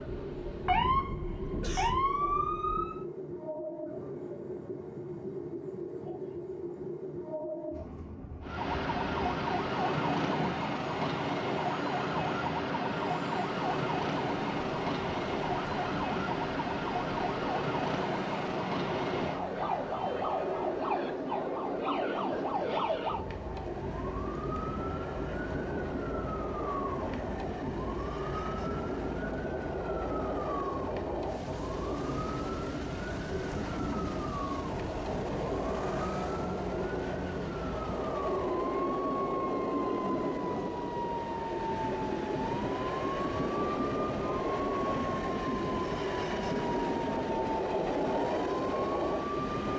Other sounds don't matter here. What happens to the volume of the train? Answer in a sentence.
The loudness of the train goes up.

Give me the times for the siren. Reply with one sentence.
The siren can be heard from 0.0 to 3.0 s and from 8.4 to 49.5 s.